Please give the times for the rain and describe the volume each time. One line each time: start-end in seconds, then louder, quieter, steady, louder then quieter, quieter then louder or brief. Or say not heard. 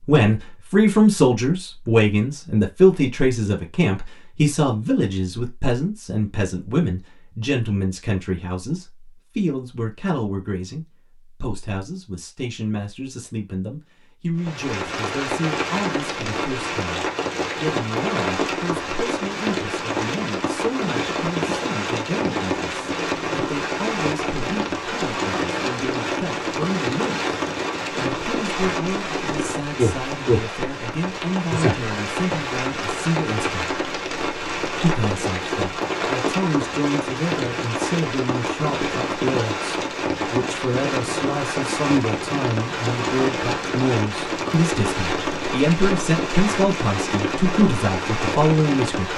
14.3-49.1 steady.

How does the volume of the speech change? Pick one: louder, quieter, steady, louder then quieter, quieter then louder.
quieter then louder.